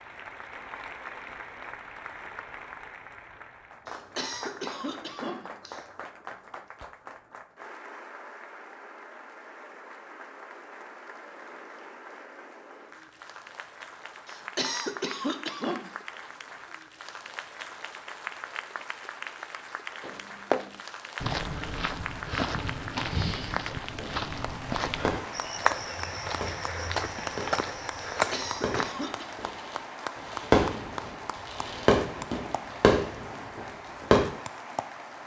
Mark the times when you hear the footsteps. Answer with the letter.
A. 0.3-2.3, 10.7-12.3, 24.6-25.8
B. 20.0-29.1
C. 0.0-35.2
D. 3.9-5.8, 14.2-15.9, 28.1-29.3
B.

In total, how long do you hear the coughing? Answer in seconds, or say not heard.
5 s.